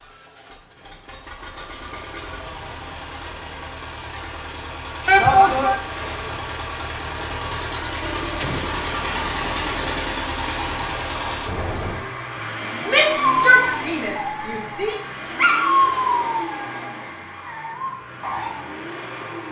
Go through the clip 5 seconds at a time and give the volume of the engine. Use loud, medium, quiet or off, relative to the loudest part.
medium, loud, loud, medium.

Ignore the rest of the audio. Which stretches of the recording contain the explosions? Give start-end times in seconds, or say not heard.
8.4-8.8.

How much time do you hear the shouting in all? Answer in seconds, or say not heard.
3 s.